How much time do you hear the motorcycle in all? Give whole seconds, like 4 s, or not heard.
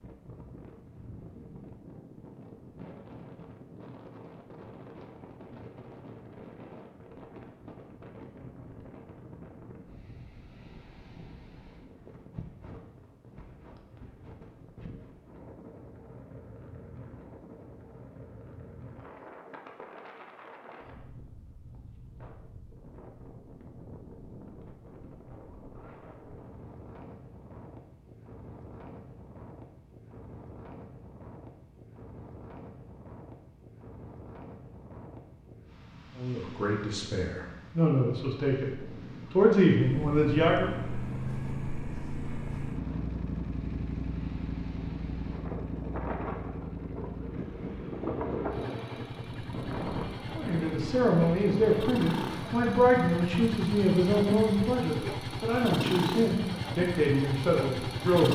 18 s.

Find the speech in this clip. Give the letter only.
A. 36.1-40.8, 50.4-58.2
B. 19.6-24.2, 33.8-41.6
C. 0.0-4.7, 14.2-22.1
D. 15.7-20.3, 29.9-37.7
A.